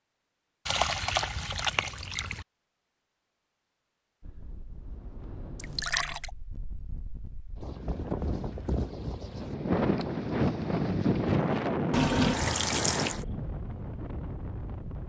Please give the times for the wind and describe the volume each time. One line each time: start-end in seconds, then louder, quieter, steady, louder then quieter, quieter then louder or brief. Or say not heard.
4.2-15.0 louder then quieter.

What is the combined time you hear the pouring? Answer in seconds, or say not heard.
4 s.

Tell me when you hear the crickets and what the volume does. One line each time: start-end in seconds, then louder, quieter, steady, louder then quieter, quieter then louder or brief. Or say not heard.
not heard.